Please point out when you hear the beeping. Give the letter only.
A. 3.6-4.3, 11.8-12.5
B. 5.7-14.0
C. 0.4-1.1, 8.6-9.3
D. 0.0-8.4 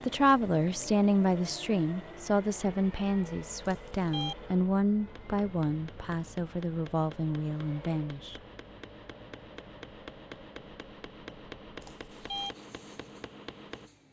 A.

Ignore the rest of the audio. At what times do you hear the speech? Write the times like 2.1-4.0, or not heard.
0.0-8.4.